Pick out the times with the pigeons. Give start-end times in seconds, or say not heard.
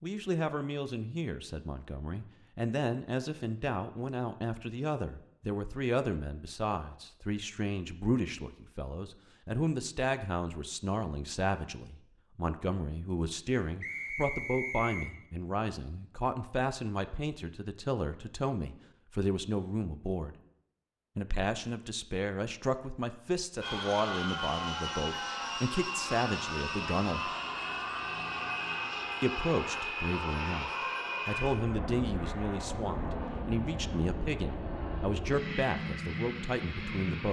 not heard.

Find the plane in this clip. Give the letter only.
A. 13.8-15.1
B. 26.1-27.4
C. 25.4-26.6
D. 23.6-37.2
D.